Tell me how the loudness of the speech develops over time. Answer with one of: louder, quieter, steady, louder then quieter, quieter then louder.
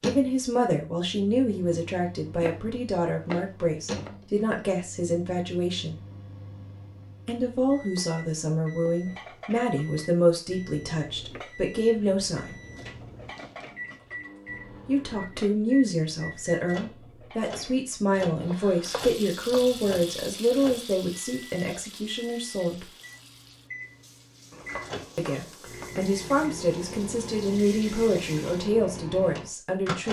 steady.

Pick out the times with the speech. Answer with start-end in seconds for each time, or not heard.
0.0-6.0, 7.2-12.6, 14.8-22.9, 25.1-30.0.